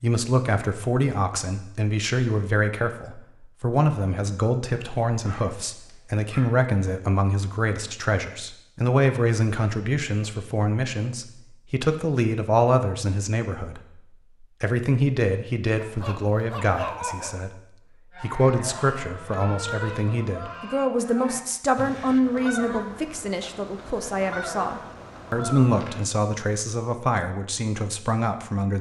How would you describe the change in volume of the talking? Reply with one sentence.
The volume of the talking stays about the same.